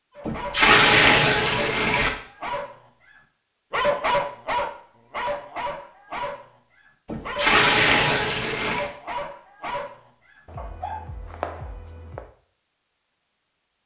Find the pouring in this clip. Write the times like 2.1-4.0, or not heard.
0.2-2.1, 7.0-8.9.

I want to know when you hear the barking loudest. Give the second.
4 s.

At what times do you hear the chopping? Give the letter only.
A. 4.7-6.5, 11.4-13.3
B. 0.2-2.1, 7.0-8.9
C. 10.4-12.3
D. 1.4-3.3
C.